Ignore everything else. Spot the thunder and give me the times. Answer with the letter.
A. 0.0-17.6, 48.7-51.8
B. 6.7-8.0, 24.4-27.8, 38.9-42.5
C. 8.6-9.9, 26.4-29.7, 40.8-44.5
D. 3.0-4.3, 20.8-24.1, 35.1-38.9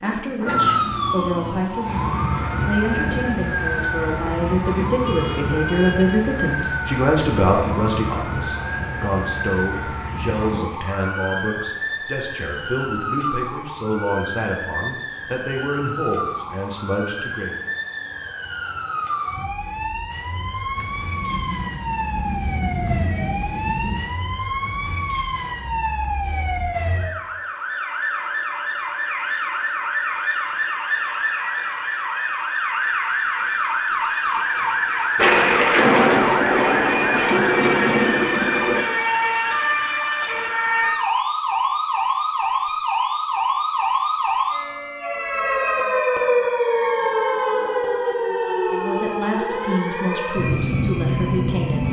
D.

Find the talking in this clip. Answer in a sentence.
You can hear the talking from 0.0 to 17.6 s and from 48.7 to 51.8 s.